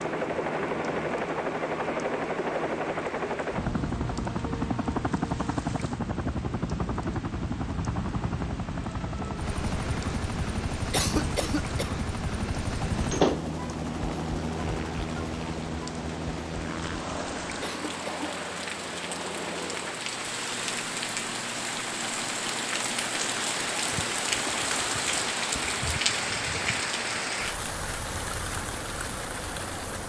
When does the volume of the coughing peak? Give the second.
11 s.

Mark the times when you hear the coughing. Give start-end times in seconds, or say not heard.
10.9-11.9, 17.6-18.3.